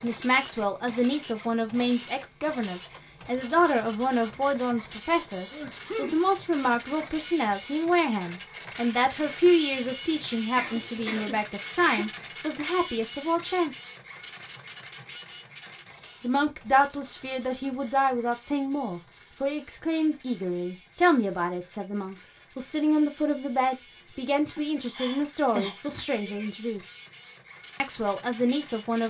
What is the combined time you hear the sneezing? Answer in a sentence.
The sneezing can be heard for 5 seconds in total.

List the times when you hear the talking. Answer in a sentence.
You can hear the talking from 0.0 to 13.8 s, from 16.2 to 26.8 s and from 27.8 to 29.0 s.